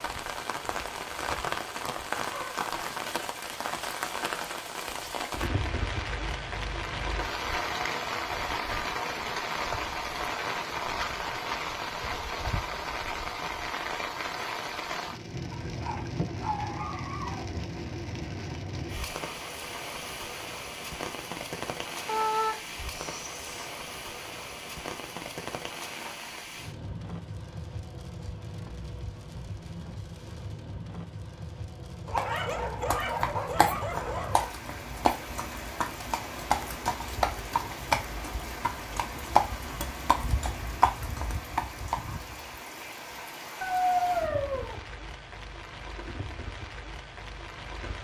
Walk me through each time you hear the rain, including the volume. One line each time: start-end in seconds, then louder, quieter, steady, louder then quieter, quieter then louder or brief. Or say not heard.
0.0-48.0 quieter.